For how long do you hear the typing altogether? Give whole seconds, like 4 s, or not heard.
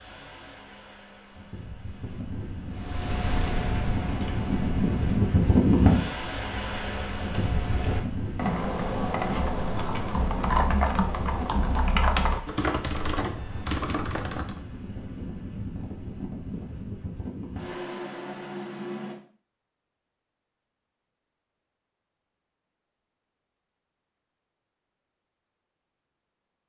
12 s.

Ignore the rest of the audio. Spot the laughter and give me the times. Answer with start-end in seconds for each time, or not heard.
not heard.